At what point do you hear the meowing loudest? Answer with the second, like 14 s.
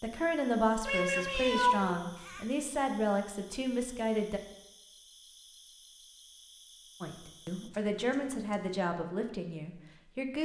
2 s.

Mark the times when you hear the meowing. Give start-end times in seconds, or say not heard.
0.8-2.5, 7.7-8.8.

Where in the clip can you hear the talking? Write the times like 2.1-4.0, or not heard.
0.0-4.4, 7.0-10.4.